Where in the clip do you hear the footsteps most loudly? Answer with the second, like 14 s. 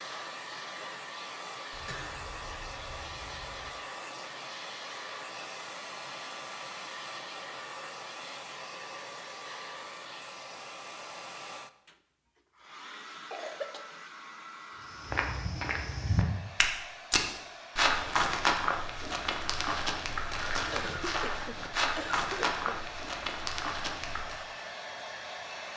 18 s.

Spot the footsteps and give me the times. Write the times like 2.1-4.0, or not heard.
15.0-24.4.